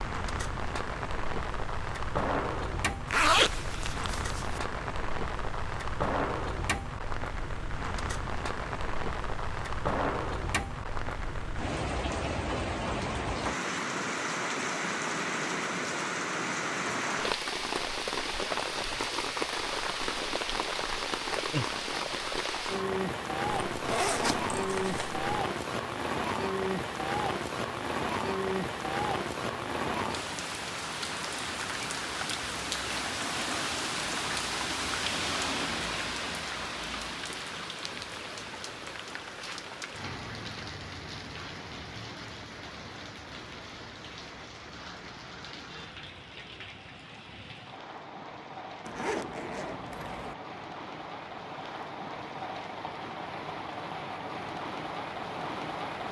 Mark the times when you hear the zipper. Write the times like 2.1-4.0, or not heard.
3.1-4.6, 23.7-25.2, 48.9-50.4.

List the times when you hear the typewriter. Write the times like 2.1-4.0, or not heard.
not heard.